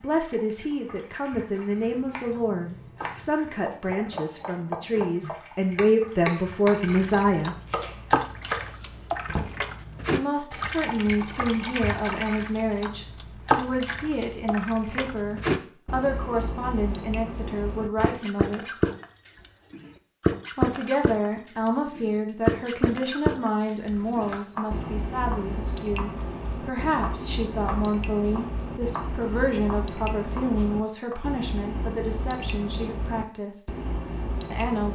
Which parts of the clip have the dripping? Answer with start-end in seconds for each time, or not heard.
0.0-34.9.